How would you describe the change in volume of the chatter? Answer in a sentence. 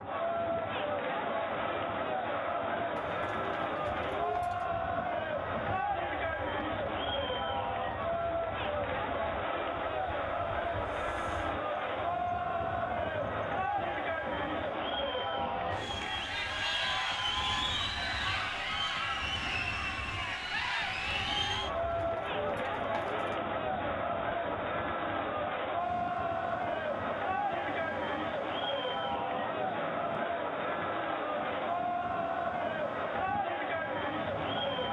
The volume of the chatter stays about the same.